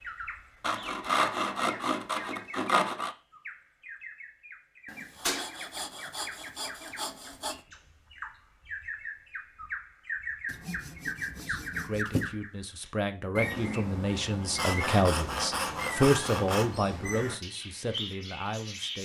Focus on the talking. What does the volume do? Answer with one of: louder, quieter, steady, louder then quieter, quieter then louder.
louder then quieter.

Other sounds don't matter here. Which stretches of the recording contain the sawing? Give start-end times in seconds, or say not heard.
0.6-3.1, 4.8-7.6, 10.4-12.4, 14.6-16.8.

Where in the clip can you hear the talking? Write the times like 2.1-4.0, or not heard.
11.3-19.0.